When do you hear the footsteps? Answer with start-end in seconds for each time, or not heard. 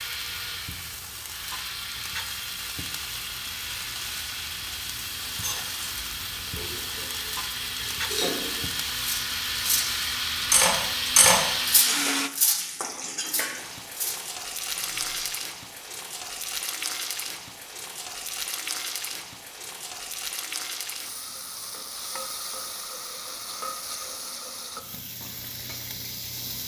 not heard.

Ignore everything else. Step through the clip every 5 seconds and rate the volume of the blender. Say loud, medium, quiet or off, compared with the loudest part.
medium, medium, loud, off, off, off.